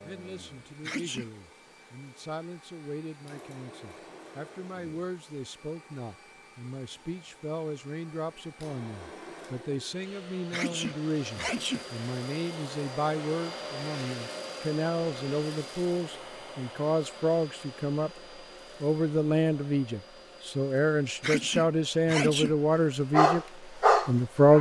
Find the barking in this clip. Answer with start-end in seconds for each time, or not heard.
23.1-24.5.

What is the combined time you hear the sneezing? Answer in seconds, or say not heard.
3 s.